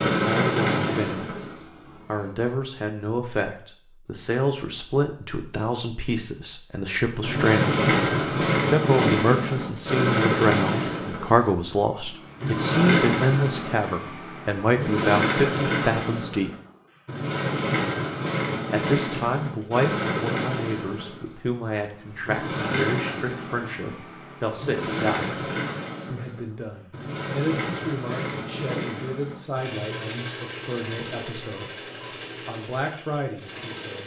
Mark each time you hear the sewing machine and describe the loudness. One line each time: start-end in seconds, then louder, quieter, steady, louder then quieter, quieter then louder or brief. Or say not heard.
0.0-2.0 brief
7.2-34.0 quieter.